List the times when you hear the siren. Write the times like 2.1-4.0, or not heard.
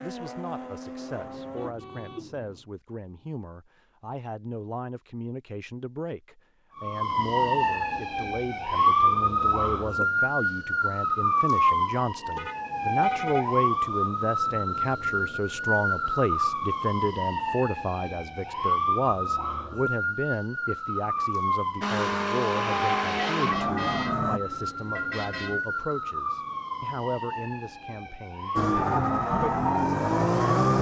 6.8-30.7.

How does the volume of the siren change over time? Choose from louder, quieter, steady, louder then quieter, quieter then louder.
quieter.